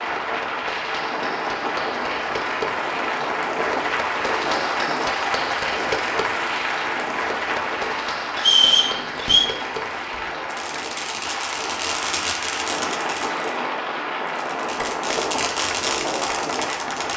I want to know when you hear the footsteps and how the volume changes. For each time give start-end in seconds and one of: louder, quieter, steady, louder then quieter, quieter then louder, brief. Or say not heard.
not heard.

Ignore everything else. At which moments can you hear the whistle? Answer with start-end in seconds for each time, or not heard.
8.3-9.5.